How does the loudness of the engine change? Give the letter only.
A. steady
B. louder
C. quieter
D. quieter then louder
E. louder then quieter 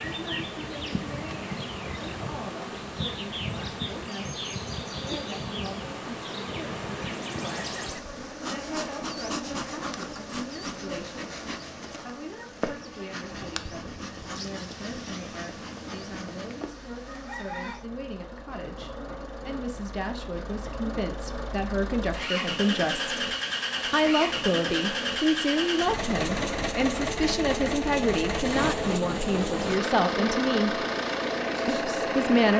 B.